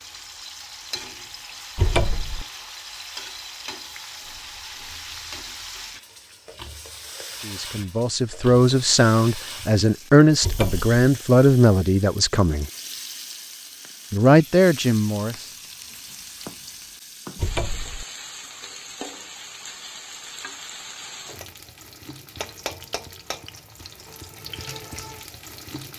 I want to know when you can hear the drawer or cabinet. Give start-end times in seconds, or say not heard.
1.8-2.5, 10.4-10.9, 17.4-18.1.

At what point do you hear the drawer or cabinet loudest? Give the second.
2 s.